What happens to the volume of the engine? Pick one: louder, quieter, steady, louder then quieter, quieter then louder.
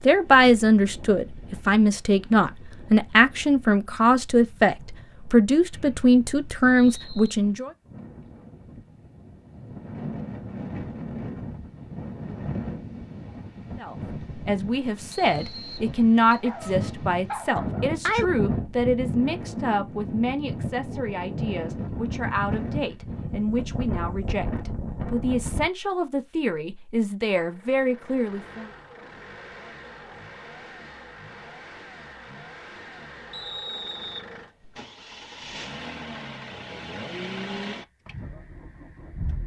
louder.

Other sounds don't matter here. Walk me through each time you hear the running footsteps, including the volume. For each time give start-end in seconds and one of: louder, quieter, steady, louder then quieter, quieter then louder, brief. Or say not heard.
not heard.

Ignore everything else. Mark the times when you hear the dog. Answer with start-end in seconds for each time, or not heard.
16.4-18.2.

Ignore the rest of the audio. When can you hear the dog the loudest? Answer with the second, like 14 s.
18 s.